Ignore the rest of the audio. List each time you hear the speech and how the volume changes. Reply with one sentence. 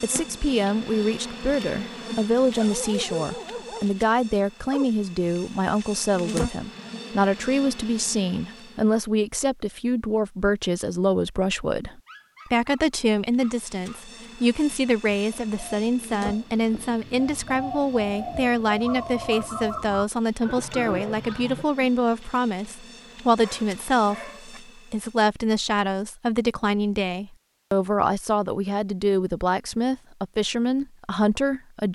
The speech can be heard from 0.0 to 31.9 s, at a steady volume.